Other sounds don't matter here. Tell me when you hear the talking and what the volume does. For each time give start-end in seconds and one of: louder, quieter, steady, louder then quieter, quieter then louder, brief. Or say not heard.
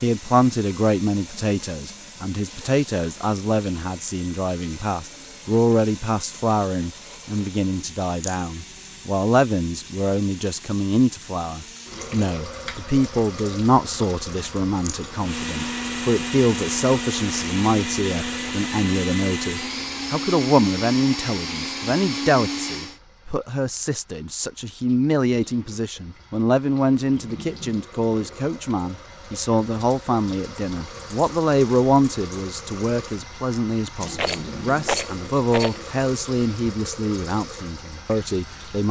0.0-38.8 steady.